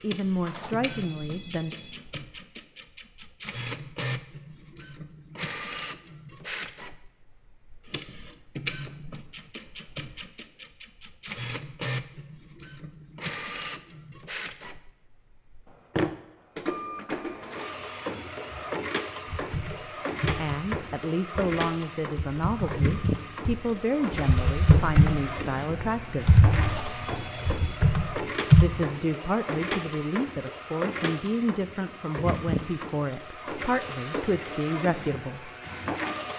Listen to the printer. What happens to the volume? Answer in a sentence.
The loudness of the printer stays about the same.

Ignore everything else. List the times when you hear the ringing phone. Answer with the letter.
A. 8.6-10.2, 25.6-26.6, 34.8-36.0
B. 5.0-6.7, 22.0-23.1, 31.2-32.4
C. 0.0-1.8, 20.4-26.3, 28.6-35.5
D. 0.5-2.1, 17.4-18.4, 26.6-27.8
D.